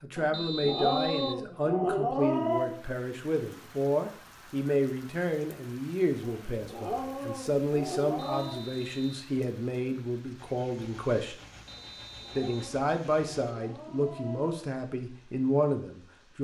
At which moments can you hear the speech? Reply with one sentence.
The speech can be heard from 0.0 to 11.3 s and from 12.3 to 16.3 s.